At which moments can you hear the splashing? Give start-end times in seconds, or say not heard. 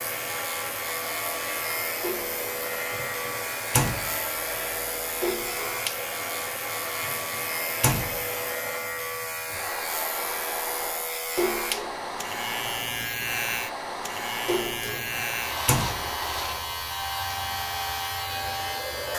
2.0-2.5, 5.2-5.8, 11.3-12.0, 14.4-15.1.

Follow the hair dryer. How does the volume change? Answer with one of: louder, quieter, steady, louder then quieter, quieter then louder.
steady.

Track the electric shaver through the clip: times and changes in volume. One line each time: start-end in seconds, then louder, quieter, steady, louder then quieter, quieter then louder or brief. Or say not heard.
0.0-19.1 steady.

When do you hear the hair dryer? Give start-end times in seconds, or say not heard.
0.0-19.1.